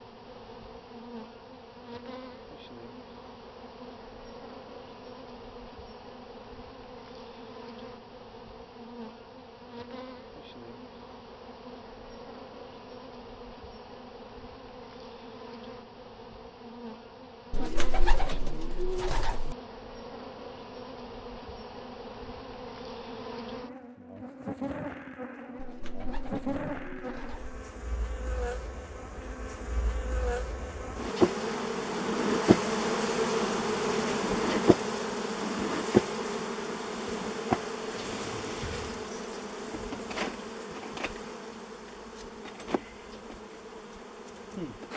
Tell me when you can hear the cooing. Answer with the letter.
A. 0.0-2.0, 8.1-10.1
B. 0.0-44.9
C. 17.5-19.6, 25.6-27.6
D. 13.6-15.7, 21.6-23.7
C.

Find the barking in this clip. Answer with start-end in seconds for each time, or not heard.
not heard.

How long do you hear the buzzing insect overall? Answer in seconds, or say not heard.
45 s.